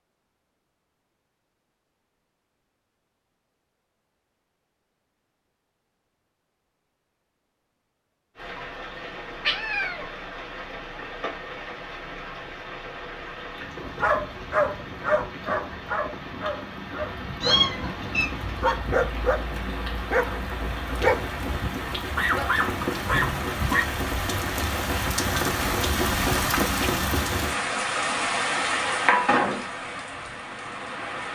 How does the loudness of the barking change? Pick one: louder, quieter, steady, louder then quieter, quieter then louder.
quieter then louder.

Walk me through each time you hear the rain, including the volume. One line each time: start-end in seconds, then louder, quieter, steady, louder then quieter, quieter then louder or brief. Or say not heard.
8.3-31.3 louder.